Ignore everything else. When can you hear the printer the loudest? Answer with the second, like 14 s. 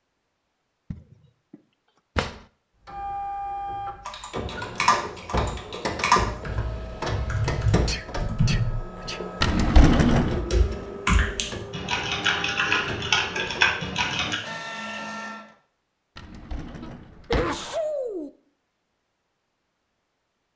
6 s.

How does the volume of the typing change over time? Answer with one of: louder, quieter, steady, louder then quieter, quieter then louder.
quieter then louder.